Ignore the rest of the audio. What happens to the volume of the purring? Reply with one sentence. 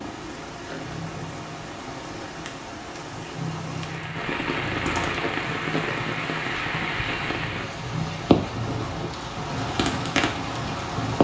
The loudness of the purring goes up.